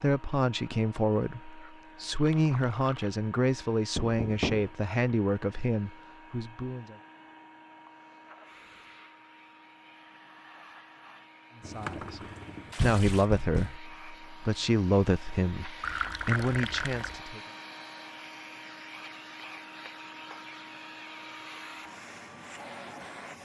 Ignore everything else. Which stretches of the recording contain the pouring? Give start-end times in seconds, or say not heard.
2.1-3.1, 11.6-13.3, 15.8-17.2.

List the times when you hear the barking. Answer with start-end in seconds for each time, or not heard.
not heard.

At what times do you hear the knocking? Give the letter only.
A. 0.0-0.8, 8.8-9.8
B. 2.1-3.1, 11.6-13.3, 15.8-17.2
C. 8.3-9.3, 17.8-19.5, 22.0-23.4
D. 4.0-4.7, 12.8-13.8
D.